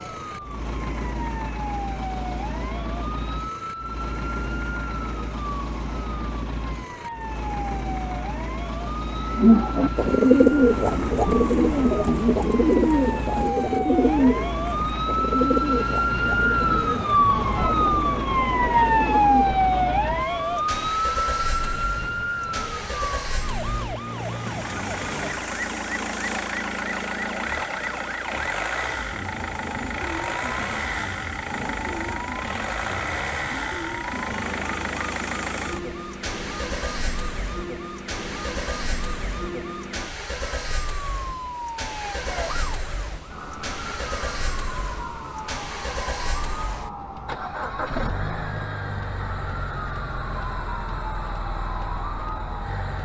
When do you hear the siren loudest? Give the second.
19 s.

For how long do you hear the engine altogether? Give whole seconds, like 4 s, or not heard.
53 s.